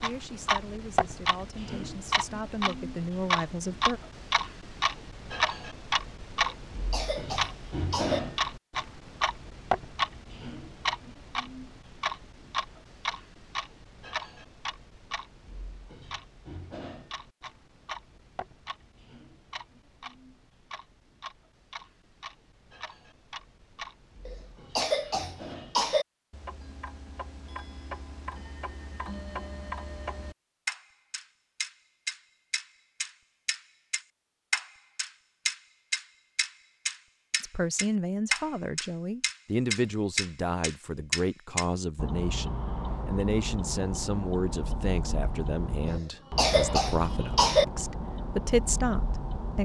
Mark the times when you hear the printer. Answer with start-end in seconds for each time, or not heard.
not heard.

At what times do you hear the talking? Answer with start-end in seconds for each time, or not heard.
0.0-4.0, 37.4-49.6.